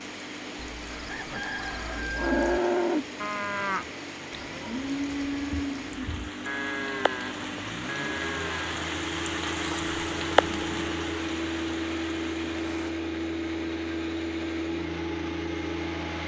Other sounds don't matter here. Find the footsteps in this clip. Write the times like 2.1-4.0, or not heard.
not heard.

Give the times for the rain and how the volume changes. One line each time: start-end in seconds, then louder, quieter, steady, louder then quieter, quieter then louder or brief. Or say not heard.
0.0-12.9 louder.